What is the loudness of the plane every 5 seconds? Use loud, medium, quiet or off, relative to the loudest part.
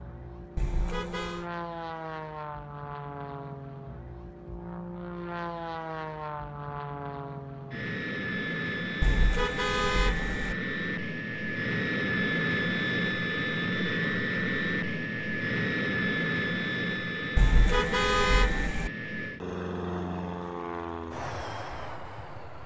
medium, medium, loud, loud, medium.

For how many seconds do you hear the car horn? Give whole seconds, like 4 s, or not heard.
4 s.